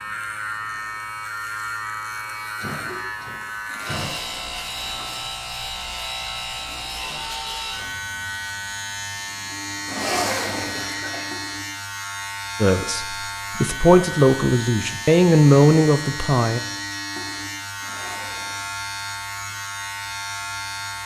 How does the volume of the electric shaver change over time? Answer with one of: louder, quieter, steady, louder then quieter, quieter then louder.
steady.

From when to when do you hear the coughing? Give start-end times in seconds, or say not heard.
2.5-4.1, 10.6-11.3.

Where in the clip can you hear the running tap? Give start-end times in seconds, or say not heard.
not heard.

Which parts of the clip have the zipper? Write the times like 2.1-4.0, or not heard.
3.6-5.2, 9.8-10.9, 17.8-18.7.